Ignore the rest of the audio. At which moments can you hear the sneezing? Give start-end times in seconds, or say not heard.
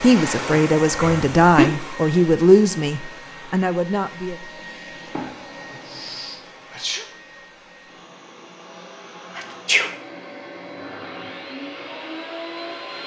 1.0-1.7, 5.8-7.0, 9.3-9.8.